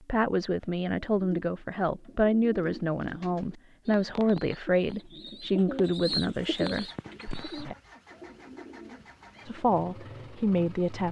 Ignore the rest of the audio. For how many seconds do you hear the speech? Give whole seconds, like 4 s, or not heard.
9 s.